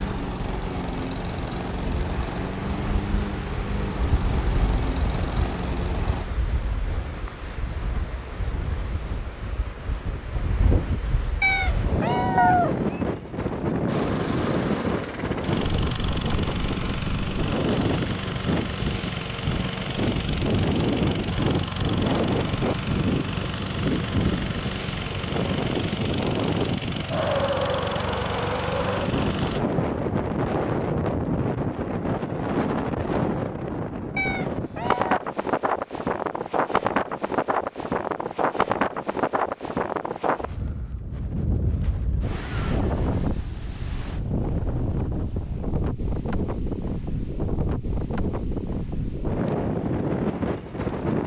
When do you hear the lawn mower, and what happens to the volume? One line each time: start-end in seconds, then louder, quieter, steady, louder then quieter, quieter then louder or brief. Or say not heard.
0.0-6.2 steady
13.8-29.6 steady.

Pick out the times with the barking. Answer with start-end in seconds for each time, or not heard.
not heard.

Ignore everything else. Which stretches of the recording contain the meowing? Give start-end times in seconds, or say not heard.
11.4-13.0, 34.1-35.2.